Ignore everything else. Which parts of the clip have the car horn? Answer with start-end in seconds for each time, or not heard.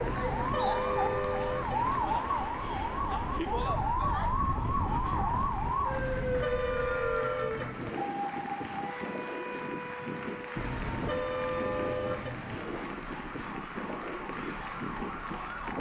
0.0-2.0, 5.9-7.9, 10.6-12.6.